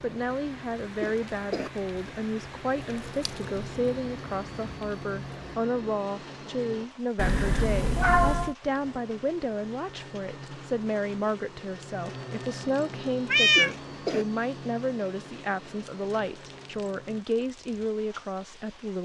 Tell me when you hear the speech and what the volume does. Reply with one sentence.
The speech can be heard from 0.0 to 19.0 s, at a steady volume.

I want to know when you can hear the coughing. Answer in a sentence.
You can hear the coughing from 1.0 to 1.7 s and from 13.6 to 14.2 s.